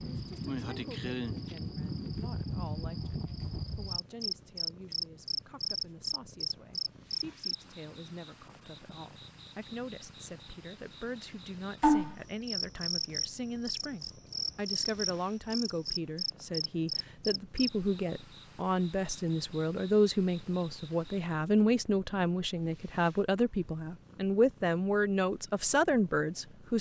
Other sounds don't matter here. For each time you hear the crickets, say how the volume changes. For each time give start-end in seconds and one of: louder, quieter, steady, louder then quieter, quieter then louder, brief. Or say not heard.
0.0-21.2 quieter.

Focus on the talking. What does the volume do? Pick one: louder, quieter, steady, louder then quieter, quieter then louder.
louder.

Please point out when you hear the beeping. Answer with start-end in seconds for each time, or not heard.
not heard.